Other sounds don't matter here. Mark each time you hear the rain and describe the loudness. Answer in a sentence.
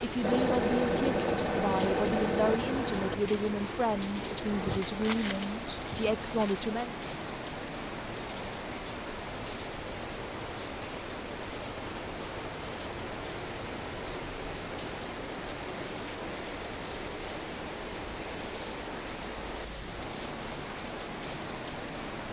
The rain can be heard from 0.0 to 22.2 s, at a steady volume.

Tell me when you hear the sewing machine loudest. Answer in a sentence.
The volume of the sewing machine peaks at 1 second.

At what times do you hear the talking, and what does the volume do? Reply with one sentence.
You can hear the talking from 0.0 to 6.9 s, at a steady volume.